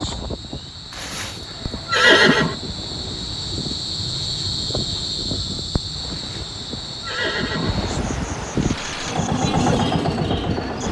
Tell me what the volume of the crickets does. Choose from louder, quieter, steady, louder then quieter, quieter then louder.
louder then quieter.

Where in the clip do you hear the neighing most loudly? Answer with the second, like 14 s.
2 s.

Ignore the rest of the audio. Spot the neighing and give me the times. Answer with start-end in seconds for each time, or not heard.
0.9-2.5, 6.0-7.9.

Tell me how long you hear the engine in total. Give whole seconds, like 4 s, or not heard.
2 s.